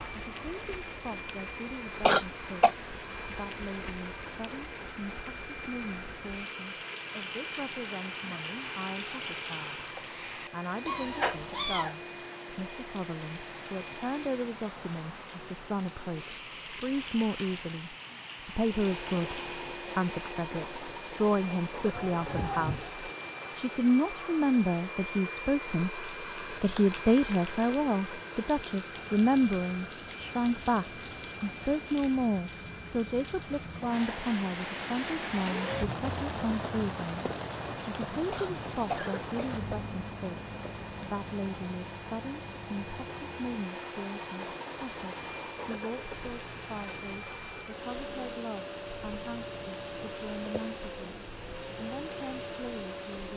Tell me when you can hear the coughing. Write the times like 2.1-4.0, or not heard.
2.0-2.7, 38.3-39.6.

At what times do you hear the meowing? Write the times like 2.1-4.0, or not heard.
10.8-11.9, 21.9-22.9, 50.5-51.1.